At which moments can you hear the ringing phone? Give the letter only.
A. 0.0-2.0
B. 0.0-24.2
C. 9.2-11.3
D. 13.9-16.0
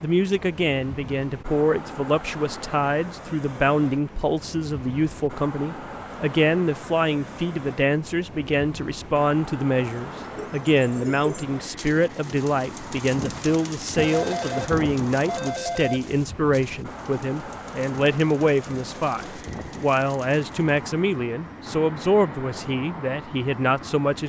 D.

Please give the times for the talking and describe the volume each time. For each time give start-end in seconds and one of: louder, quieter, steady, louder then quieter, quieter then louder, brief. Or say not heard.
0.0-24.2 steady.